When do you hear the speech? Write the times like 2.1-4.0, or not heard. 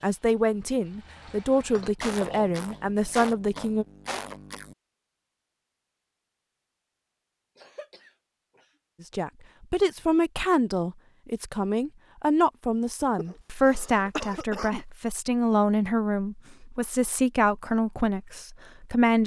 0.0-3.9, 9.0-19.2.